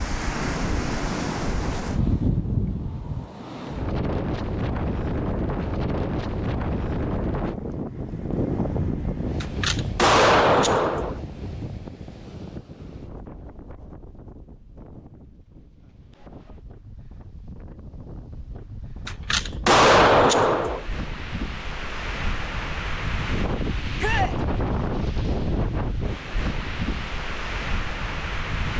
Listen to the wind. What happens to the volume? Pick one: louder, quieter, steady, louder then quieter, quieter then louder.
quieter then louder.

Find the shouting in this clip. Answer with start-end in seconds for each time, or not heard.
23.9-24.4.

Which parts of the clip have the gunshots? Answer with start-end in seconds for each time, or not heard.
9.4-11.2, 19.1-20.9.